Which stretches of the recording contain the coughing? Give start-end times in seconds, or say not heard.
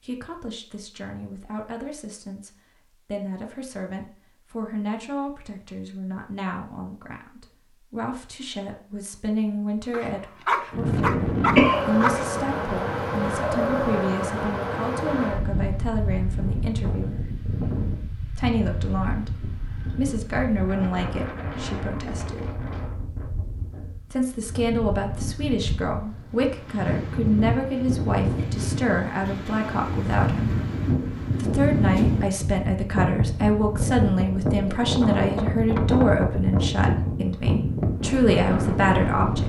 11.6-12.2.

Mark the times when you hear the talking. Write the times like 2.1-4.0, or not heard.
0.0-17.2, 18.4-22.4, 24.1-30.6, 31.4-39.4.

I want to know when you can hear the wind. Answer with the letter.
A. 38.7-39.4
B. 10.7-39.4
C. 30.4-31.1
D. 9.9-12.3
B.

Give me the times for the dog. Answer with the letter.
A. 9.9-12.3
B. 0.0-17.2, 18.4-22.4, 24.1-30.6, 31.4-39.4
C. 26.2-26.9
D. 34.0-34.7
A.